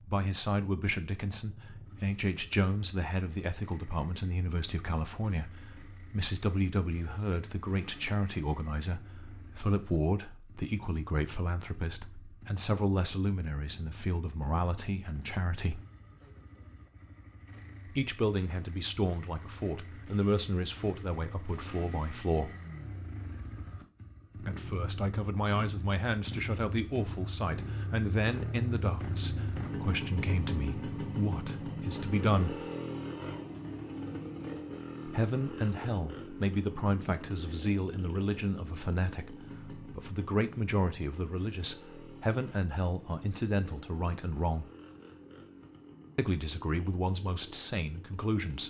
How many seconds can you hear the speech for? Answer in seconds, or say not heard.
41 s.